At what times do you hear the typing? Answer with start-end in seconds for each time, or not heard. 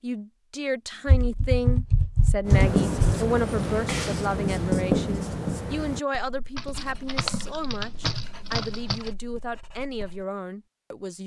1.1-3.1, 6.5-9.1.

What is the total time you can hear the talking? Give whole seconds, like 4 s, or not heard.
11 s.